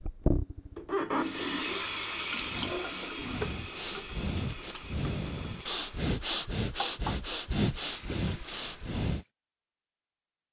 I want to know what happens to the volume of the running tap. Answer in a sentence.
The loudness of the running tap goes down.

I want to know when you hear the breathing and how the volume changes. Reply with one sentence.
The breathing can be heard from 2.3 to 9.2 s, getting louder.